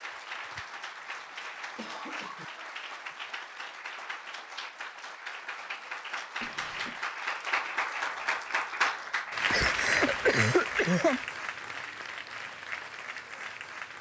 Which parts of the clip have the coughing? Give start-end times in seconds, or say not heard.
0.6-2.5, 6.4-7.0, 9.5-11.2.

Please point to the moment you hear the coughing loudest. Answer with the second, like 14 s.
10 s.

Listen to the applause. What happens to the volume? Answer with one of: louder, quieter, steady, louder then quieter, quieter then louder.
louder then quieter.